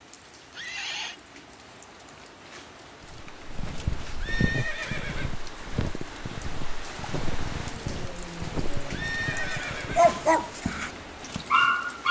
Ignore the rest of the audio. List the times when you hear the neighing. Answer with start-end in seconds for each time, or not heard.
0.5-1.1, 4.2-5.3, 8.9-10.2.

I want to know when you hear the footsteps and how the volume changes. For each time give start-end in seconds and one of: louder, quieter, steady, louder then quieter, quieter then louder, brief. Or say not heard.
3.0-11.6 quieter.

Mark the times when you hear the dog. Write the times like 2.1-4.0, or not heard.
7.5-12.0.